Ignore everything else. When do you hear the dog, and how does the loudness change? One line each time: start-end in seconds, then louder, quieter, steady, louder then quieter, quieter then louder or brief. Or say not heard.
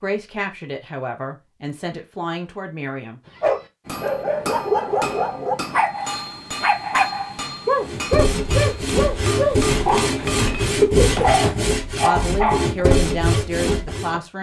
3.4-12.7 steady.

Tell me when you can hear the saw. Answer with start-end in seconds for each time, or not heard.
7.8-14.2.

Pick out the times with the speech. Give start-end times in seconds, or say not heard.
0.0-3.3, 12.0-14.3.